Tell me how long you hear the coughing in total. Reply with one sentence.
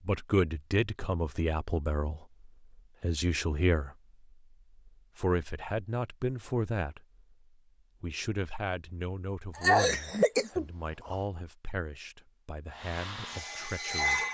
You can hear the coughing for 2 seconds altogether.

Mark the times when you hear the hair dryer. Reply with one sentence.
You can hear the hair dryer from 12.7 to 14.2 s.